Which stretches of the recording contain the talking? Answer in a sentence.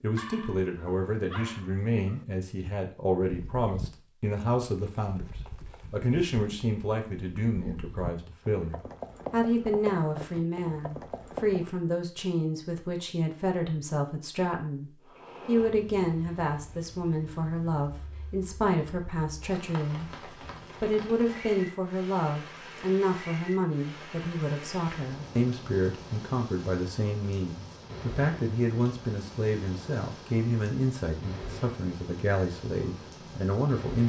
The talking can be heard from 0.0 to 5.2 s and from 5.9 to 34.0 s.